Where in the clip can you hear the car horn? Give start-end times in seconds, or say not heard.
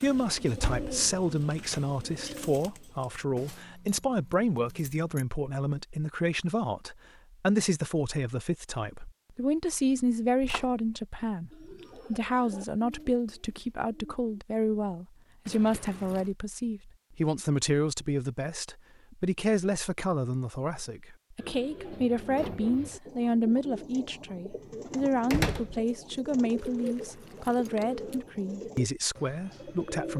not heard.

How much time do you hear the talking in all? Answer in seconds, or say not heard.
30 s.